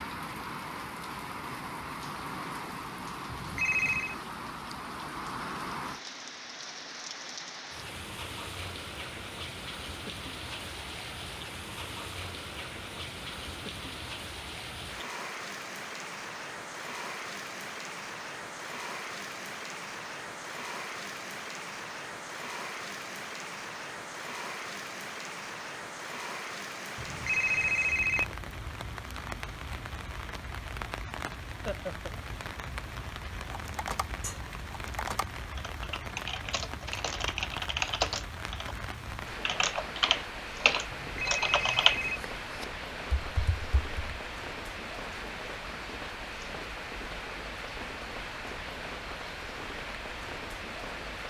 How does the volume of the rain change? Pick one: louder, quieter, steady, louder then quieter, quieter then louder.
steady.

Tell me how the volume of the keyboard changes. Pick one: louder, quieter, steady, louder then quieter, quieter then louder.
louder.